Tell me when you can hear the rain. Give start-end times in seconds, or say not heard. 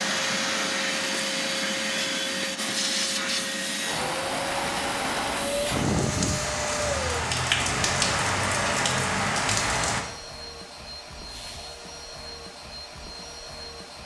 0.0-10.1.